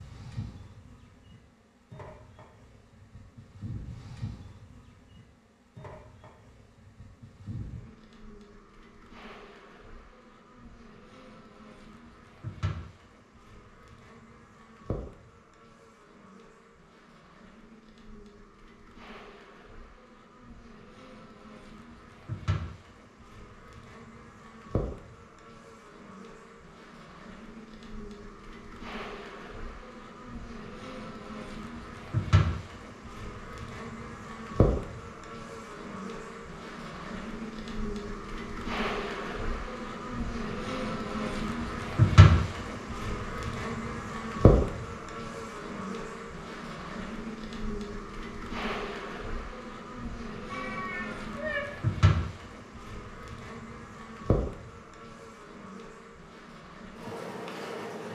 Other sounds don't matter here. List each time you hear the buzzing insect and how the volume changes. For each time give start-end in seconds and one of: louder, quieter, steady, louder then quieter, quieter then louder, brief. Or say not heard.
0.0-58.1 louder then quieter.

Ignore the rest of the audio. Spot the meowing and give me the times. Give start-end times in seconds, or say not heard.
50.5-51.6.